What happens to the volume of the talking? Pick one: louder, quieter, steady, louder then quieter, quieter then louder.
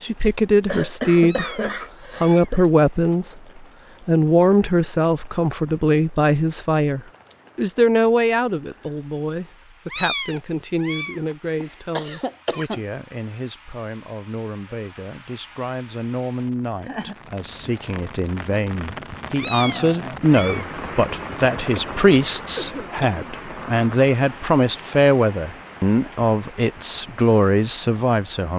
quieter then louder.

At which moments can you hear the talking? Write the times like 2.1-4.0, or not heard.
0.0-28.5.